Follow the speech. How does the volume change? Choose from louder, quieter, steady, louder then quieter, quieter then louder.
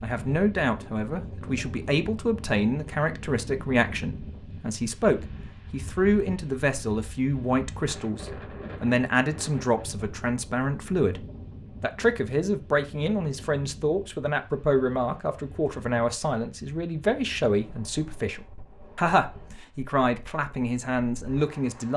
steady.